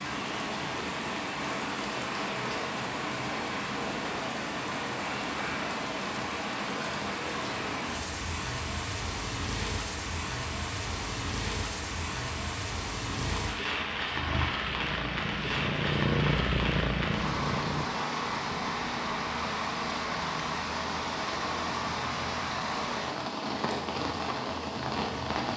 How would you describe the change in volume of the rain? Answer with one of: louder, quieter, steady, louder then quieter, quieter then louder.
steady.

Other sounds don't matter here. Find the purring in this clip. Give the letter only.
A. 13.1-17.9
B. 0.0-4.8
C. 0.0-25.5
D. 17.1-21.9
A.